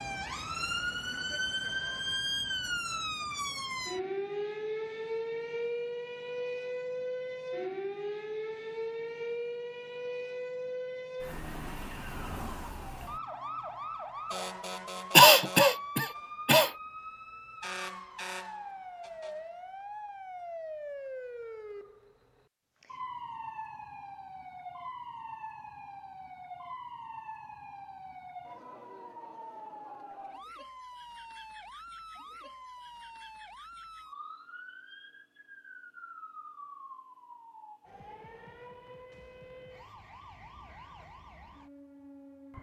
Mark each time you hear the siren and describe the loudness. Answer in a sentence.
You can hear the siren from 0.0 to 42.5 s, getting quieter.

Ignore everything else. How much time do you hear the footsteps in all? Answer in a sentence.
The footsteps can't be heard in this clip.